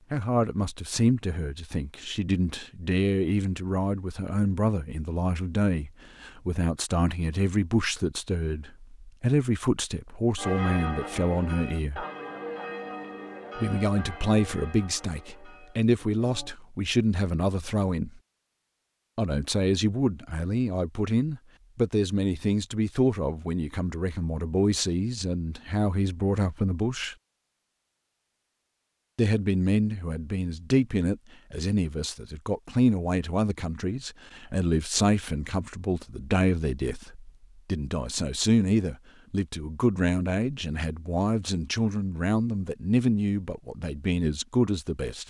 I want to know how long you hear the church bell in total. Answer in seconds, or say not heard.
6 s.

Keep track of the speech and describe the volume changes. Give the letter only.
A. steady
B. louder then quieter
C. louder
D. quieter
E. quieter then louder
A.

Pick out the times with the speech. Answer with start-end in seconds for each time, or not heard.
0.1-12.1, 13.6-18.2, 19.1-27.1, 29.1-45.2.